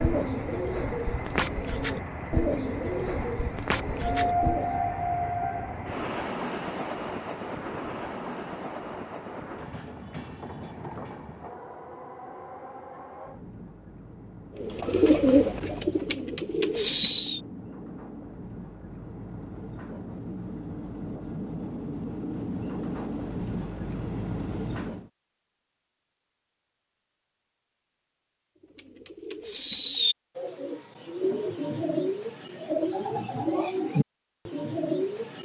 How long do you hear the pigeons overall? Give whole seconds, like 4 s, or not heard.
14 s.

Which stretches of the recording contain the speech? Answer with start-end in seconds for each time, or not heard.
not heard.